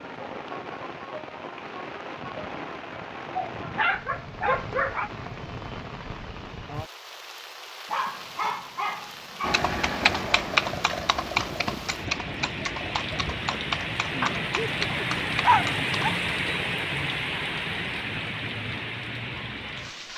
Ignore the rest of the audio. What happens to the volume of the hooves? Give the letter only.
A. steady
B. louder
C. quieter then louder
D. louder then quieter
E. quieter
E.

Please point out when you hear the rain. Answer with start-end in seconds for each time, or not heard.
0.0-20.1.